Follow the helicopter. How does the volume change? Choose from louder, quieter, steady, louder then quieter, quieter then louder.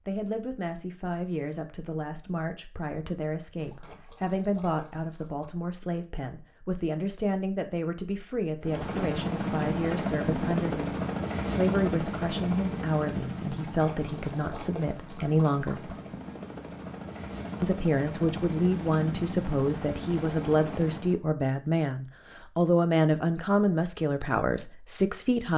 quieter then louder.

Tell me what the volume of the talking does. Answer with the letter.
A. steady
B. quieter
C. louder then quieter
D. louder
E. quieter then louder
D.